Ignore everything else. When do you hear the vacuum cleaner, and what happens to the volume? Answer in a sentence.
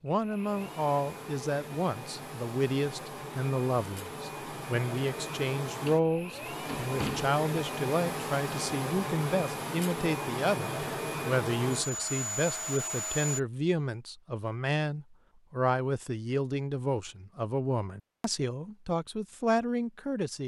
The vacuum cleaner can be heard from 0.1 to 13.4 s, getting louder.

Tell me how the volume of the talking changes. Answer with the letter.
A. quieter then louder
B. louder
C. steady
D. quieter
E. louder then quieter
C.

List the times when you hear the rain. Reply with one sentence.
You can't hear the rain here.